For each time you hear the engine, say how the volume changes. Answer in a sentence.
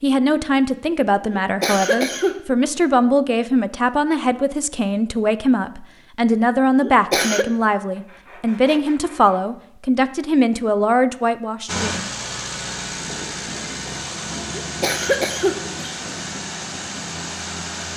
The engine can be heard from 11.7 to 17.9 s, at a steady volume.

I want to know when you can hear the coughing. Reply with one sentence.
The coughing can be heard from 1.3 to 2.4 s, from 6.8 to 7.5 s and from 14.5 to 16.0 s.